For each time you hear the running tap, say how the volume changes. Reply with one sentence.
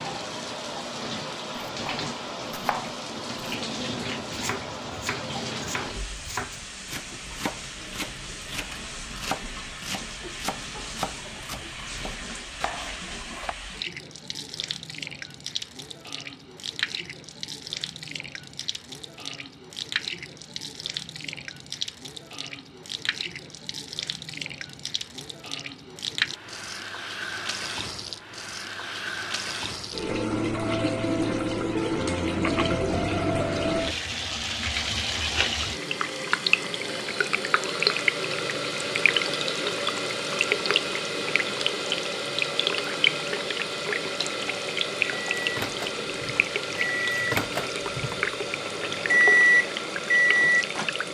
The running tap can be heard from 0.0 to 51.1 s, getting louder.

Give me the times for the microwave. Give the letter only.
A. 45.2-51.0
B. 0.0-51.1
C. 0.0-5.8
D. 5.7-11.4
A.